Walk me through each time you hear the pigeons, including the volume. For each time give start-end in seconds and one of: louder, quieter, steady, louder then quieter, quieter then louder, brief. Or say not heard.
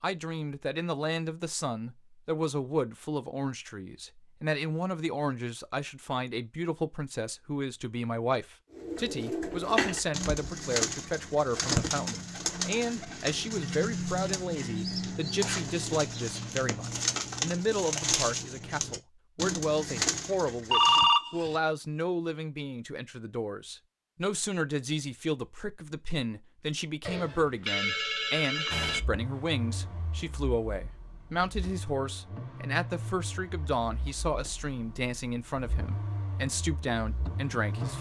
8.7-21.1 steady.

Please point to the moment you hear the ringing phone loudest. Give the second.
21 s.